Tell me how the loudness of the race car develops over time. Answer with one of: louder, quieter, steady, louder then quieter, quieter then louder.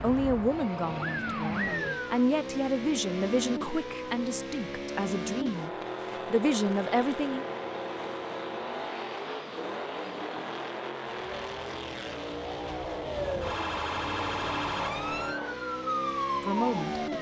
steady.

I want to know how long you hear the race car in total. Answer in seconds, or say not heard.
17 s.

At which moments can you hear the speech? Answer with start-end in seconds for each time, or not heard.
0.0-7.5, 16.4-17.0.